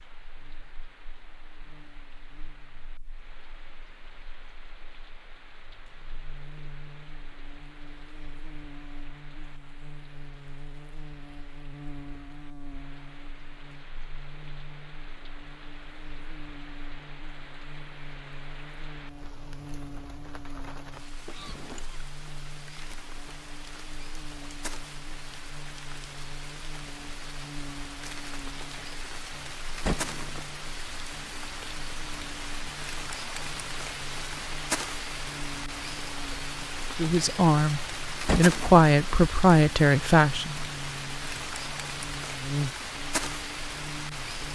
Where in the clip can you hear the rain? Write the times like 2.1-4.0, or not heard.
0.0-44.4.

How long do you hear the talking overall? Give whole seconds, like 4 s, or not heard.
4 s.